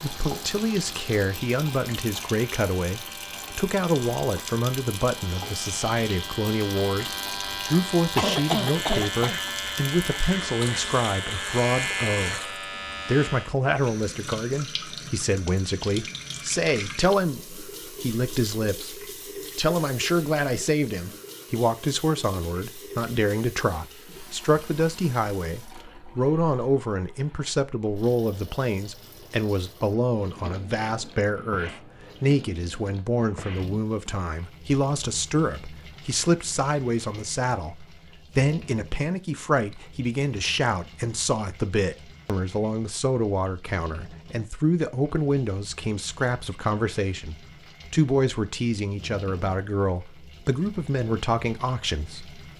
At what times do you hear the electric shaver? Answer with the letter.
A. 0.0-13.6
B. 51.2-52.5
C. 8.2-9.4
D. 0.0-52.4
A.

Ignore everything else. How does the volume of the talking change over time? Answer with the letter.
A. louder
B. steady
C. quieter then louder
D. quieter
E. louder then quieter
B.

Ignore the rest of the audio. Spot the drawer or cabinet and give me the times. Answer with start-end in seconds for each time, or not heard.
not heard.